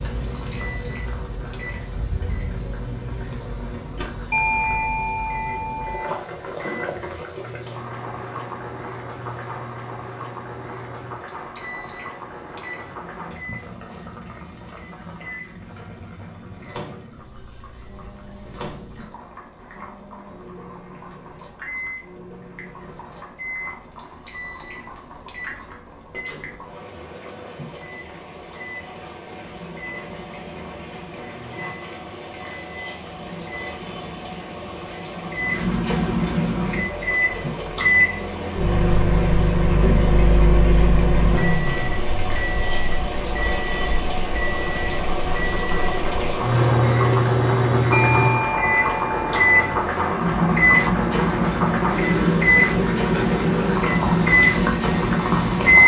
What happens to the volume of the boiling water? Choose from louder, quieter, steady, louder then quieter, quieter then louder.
quieter then louder.